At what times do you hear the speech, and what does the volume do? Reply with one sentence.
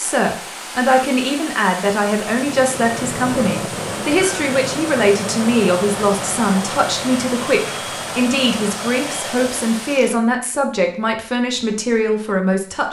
The speech can be heard from 0.0 to 12.8 s, at a steady volume.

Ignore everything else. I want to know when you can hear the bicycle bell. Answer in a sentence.
The bicycle bell can't be heard in this clip.